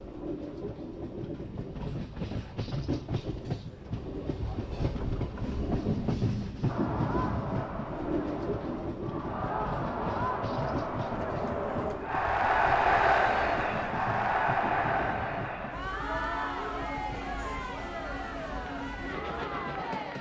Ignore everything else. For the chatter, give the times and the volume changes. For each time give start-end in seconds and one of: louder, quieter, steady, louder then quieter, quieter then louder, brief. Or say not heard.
6.7-20.1 louder then quieter.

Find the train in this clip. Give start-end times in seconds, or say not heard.
0.0-20.1.